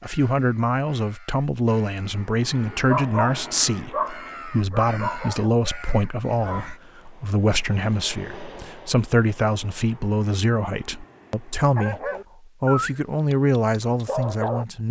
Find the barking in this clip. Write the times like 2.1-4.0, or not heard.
2.9-6.8, 11.8-14.8.